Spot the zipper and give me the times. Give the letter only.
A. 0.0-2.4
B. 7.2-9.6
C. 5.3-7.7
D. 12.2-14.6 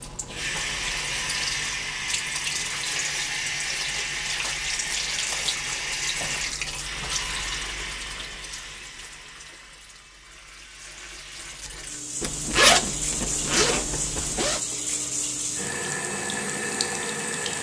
D.